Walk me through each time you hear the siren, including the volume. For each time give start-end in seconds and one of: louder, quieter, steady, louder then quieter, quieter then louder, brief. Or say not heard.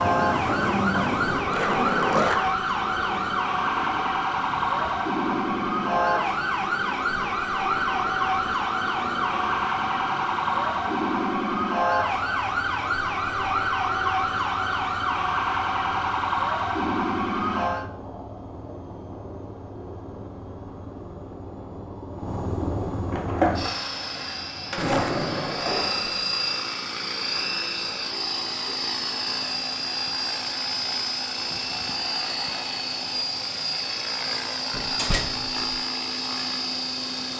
0.0-17.9 steady.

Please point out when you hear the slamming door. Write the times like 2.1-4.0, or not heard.
34.7-35.6.